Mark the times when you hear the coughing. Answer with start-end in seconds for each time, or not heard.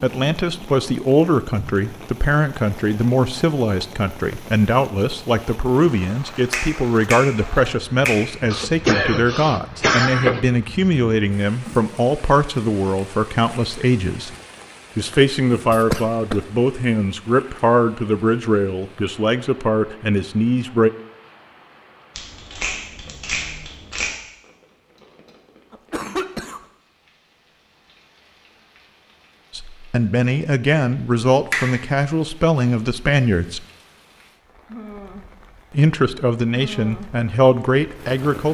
8.5-10.4, 15.7-16.4, 25.7-26.6.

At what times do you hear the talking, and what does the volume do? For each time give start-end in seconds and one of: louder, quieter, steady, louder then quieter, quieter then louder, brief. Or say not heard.
0.0-14.3 steady
14.9-20.9 steady
29.5-33.6 steady
35.7-38.5 brief.